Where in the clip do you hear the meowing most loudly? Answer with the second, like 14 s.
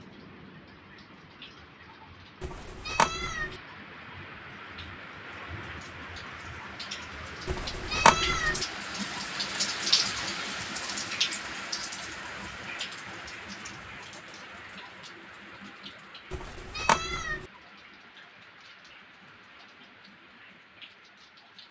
8 s.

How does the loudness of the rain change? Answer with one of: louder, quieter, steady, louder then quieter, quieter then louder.
louder then quieter.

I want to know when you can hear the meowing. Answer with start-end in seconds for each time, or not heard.
2.4-3.5, 7.5-8.7, 16.3-17.4.